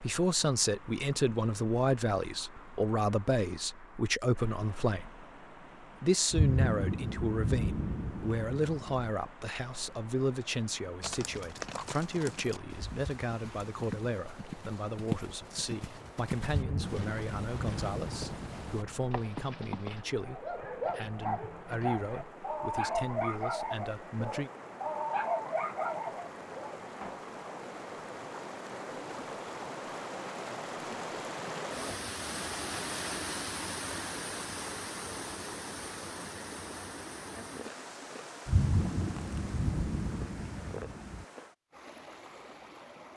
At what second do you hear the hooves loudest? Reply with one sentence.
The volume of the hooves peaks at 15 seconds.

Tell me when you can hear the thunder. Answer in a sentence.
The thunder can be heard from 6.3 to 9.1 s, from 16.4 to 19.1 s and from 38.5 to 41.2 s.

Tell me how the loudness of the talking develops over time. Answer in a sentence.
The volume of the talking goes down.